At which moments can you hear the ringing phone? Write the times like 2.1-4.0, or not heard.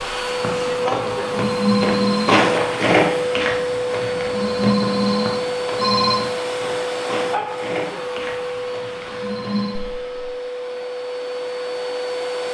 1.2-2.4, 4.2-6.2, 9.1-9.8.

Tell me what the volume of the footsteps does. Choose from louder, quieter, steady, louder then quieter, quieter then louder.
louder then quieter.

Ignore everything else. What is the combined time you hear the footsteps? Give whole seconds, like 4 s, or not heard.
10 s.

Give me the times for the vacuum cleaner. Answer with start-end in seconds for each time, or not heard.
0.0-12.5.